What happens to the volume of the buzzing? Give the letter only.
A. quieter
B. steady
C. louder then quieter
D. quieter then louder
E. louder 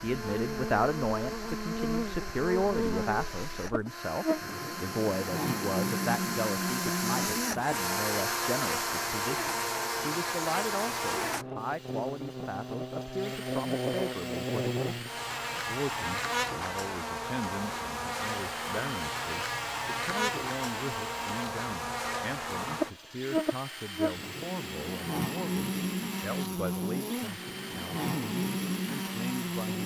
B.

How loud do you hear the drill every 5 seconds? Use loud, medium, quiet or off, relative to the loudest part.
medium, loud, medium, medium, medium, medium.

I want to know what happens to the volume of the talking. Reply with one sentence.
The loudness of the talking goes down.